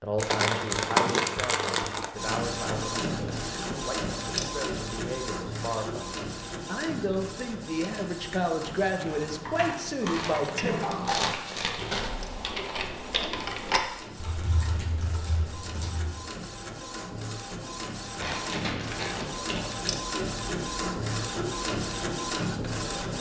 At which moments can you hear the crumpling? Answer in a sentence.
The crumpling can be heard from 0.1 to 2.1 s, from 10.1 to 12.4 s and from 18.1 to 19.7 s.